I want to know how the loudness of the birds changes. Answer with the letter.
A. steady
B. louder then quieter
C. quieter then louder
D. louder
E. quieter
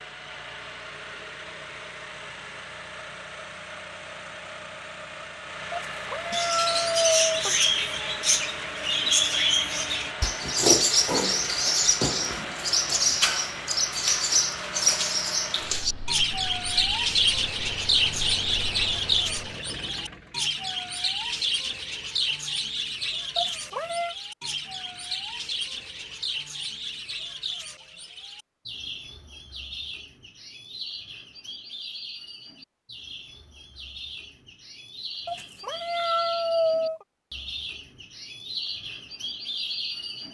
E.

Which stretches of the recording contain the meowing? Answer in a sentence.
The meowing can be heard from 5.7 to 7.5 s, from 23.4 to 24.1 s and from 35.2 to 37.0 s.